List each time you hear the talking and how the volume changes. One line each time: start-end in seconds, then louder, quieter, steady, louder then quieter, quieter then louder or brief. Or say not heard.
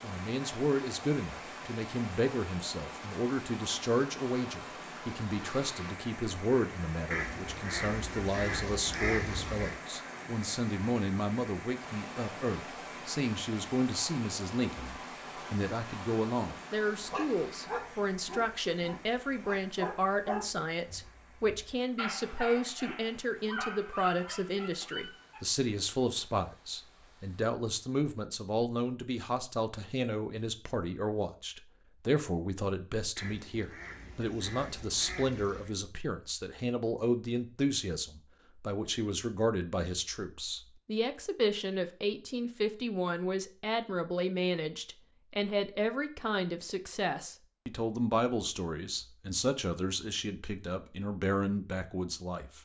0.0-52.6 steady.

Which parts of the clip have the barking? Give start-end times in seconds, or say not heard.
16.9-25.4.